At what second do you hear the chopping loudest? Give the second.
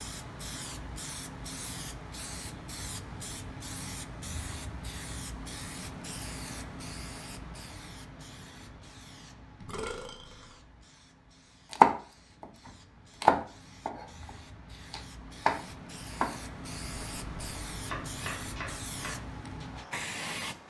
12 s.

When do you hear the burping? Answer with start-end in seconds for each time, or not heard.
9.6-10.6.